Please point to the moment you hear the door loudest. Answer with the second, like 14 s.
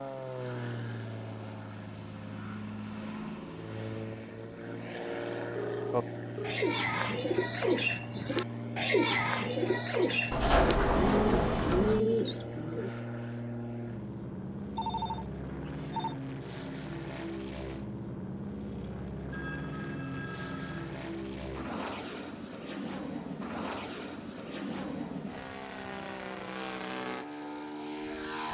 11 s.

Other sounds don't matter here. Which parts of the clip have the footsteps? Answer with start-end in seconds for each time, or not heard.
not heard.